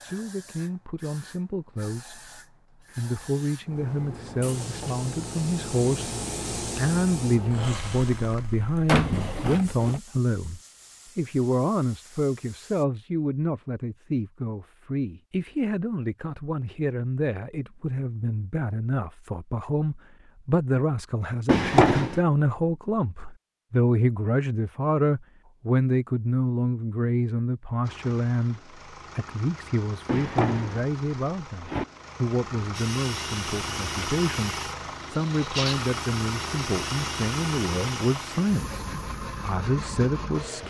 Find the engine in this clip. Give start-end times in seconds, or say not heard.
27.8-40.6.